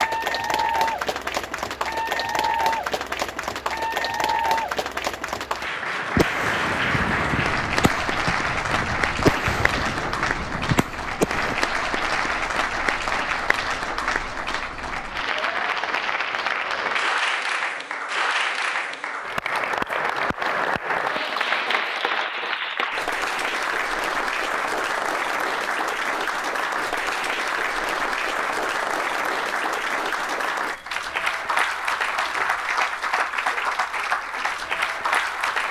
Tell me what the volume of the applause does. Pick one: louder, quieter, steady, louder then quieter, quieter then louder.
steady.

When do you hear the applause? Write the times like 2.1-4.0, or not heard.
0.0-35.6.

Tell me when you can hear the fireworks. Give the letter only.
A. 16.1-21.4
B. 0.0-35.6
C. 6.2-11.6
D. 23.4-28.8
C.